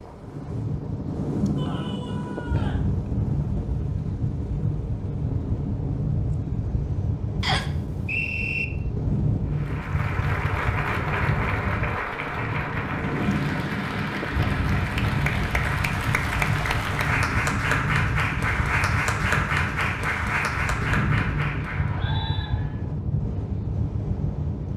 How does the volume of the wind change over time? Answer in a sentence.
The loudness of the wind stays about the same.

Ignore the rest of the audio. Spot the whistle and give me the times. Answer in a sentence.
You can hear the whistle from 7.4 to 8.7 s and from 21.7 to 22.5 s.